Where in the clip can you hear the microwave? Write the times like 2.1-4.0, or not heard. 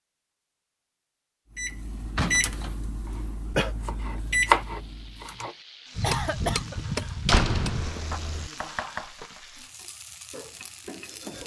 1.6-5.5.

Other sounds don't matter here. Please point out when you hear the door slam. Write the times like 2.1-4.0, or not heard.
2.1-2.9, 7.2-8.5.